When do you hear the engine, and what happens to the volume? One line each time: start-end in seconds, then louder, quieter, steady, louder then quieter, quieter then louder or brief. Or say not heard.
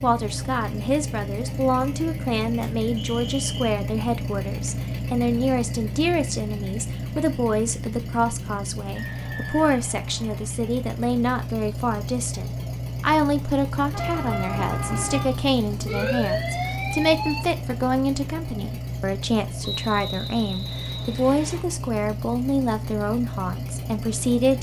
0.0-24.5 steady.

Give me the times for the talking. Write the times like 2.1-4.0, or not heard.
0.0-24.5.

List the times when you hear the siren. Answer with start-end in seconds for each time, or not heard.
13.9-17.4.